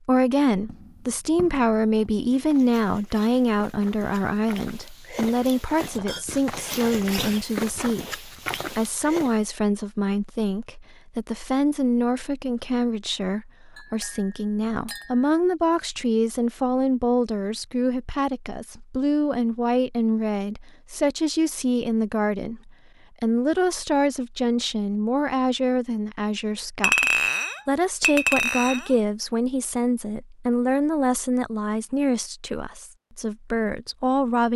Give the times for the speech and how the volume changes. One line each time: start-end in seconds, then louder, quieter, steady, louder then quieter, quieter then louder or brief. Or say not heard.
0.1-34.5 steady.